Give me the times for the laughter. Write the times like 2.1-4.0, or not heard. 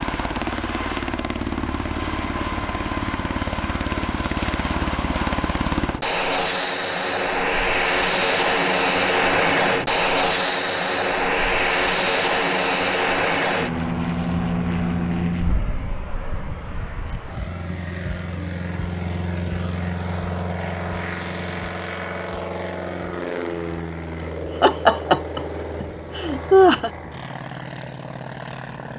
24.6-26.9.